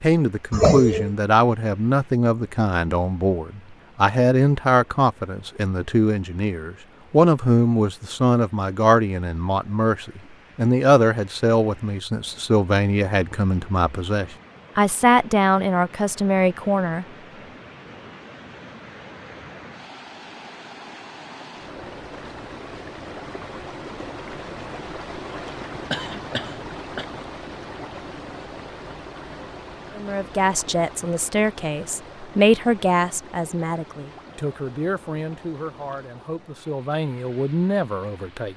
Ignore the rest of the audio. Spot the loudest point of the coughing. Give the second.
1 s.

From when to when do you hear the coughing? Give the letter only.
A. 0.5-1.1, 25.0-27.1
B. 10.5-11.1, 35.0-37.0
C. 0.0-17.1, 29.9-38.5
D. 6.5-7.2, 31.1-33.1
A.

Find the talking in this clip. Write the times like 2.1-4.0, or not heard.
0.0-17.1, 29.9-38.5.